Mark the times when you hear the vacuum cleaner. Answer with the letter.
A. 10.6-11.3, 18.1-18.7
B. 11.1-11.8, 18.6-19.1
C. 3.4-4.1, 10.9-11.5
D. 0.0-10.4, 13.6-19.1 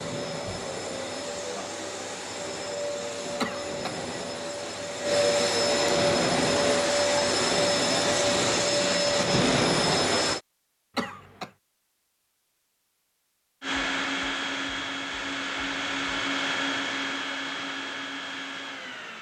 D.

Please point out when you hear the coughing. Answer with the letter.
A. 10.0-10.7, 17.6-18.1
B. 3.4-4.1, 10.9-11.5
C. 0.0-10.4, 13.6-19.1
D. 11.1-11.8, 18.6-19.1
B.